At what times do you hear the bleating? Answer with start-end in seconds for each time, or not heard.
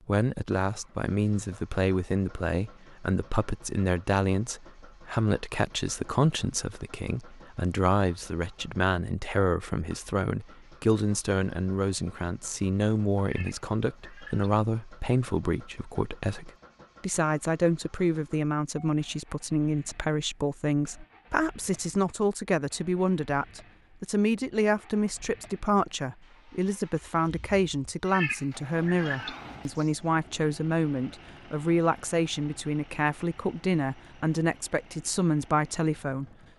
not heard.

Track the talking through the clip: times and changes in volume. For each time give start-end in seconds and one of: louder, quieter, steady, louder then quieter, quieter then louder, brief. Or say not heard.
0.1-36.2 steady.